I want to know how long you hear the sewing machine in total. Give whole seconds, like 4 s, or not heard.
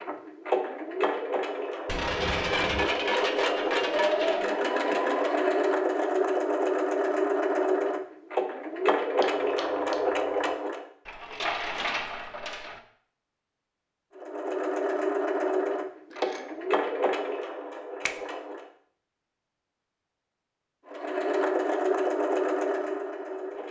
18 s.